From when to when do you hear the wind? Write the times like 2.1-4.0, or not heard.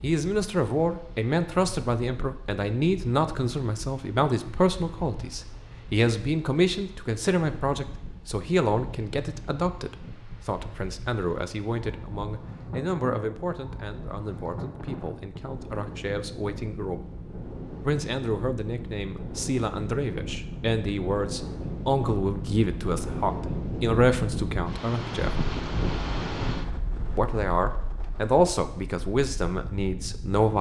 0.0-30.5.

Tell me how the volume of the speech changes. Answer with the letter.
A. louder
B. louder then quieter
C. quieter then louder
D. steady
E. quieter
C.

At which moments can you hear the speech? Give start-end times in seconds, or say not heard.
0.0-17.1, 17.8-25.4, 27.1-30.5.